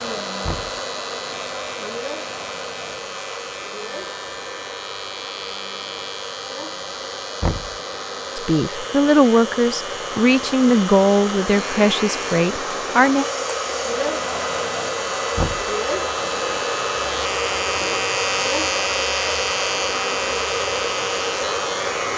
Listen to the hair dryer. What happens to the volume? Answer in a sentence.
The volume of the hair dryer goes up.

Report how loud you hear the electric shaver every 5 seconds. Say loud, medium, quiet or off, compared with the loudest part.
medium, medium, medium, loud, loud.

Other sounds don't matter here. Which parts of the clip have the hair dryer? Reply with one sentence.
You can hear the hair dryer from 0.0 to 22.1 s.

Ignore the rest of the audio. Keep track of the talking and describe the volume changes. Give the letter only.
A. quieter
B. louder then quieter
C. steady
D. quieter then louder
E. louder
A.